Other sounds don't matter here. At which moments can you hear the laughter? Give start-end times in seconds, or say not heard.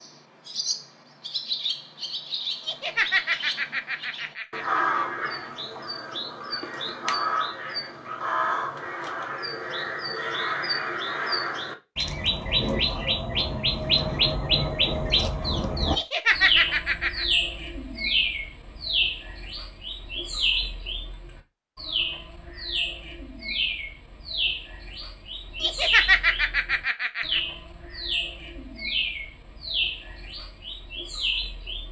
2.6-5.0, 15.9-17.2, 25.6-27.4.